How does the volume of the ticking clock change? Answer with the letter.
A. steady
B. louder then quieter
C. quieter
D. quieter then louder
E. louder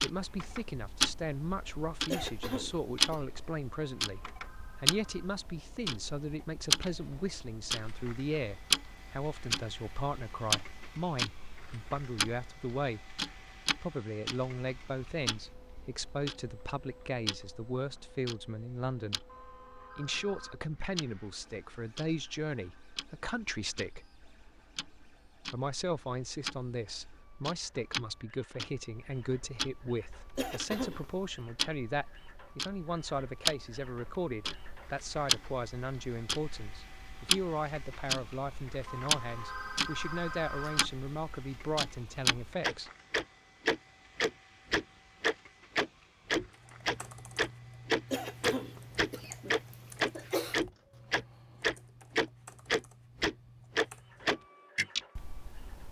D.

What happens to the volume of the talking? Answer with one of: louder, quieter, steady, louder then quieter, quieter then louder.
steady.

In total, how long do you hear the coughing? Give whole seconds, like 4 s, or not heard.
4 s.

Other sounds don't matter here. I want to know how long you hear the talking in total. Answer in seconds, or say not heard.
41 s.